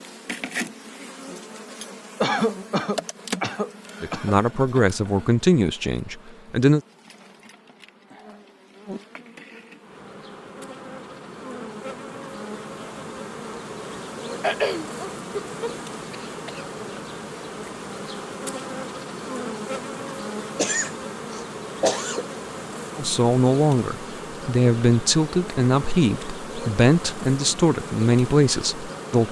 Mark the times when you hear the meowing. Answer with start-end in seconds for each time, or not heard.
not heard.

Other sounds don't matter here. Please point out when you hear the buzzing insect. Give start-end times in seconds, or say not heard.
0.0-29.2.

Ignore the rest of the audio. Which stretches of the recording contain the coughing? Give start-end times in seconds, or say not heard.
2.2-4.3, 14.4-16.6, 20.6-22.2.